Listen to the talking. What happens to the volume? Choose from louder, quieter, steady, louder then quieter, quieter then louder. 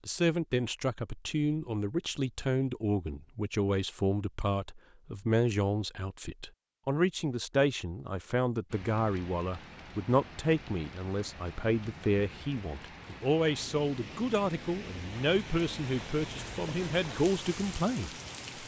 steady.